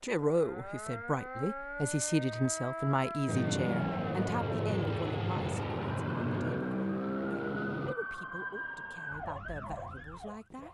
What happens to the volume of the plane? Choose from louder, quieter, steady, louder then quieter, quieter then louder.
steady.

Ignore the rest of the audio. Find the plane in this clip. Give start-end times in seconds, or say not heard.
3.2-8.0.